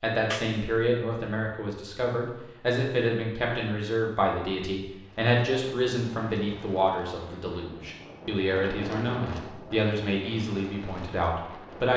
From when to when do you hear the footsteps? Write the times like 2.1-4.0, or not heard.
not heard.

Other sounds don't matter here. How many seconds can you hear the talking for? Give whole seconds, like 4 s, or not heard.
12 s.